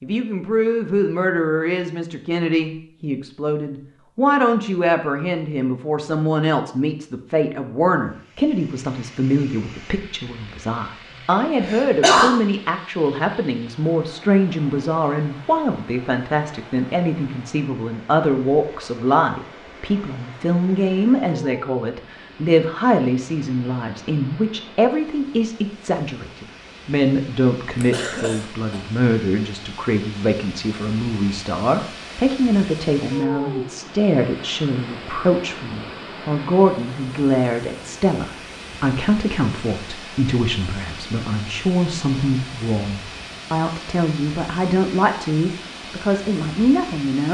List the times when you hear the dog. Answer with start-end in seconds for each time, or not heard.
not heard.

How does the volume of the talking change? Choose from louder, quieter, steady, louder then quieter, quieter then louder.
steady.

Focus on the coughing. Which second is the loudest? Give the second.
12 s.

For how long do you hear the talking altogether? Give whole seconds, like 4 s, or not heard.
47 s.